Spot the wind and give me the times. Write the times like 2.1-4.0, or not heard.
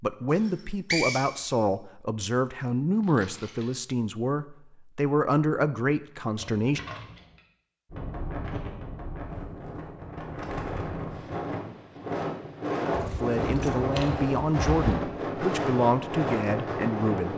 7.9-17.3.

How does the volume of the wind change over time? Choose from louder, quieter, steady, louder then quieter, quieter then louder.
louder.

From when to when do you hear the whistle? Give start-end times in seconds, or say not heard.
0.3-1.5.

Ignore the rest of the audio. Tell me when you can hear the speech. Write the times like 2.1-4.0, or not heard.
0.0-6.8, 13.1-17.3.